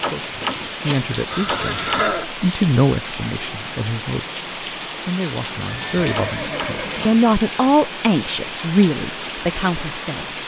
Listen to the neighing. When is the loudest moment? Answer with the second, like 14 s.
2 s.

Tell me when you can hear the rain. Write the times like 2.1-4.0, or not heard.
0.0-10.4.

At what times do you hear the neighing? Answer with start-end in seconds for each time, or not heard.
1.3-2.3, 5.5-7.2.